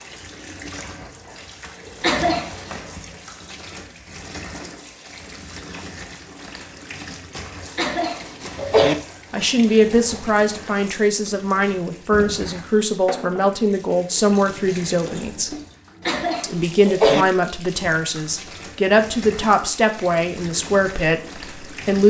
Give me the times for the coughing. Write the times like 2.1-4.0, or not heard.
2.0-2.7, 7.8-8.9, 16.1-17.2.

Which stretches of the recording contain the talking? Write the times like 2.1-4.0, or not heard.
9.3-15.6, 16.4-22.0.